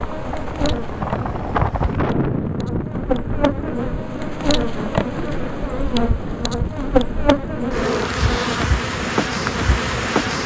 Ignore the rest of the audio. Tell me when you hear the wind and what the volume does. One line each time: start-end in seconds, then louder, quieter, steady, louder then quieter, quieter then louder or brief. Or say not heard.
0.0-10.4 quieter.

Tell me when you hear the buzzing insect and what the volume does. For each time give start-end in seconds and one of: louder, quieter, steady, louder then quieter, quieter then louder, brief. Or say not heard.
0.0-10.4 louder.